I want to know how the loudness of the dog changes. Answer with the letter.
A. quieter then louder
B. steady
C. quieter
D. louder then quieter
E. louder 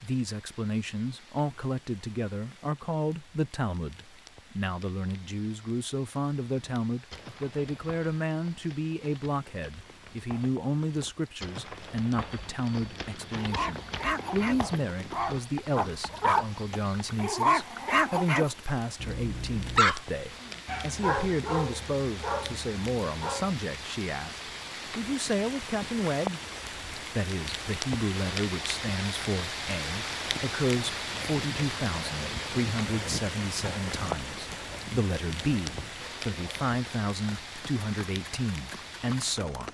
D.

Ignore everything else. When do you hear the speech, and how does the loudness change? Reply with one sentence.
The speech can be heard from 0.0 to 39.6 s, at a steady volume.